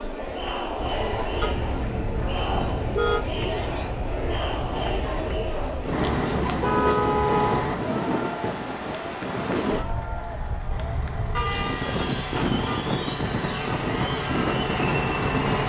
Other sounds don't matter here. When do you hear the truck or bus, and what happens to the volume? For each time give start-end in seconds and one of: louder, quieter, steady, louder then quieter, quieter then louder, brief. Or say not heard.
5.9-7.8 brief
10.7-15.6 louder.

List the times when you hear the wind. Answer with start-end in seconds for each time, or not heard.
0.0-15.6.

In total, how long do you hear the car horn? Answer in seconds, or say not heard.
5 s.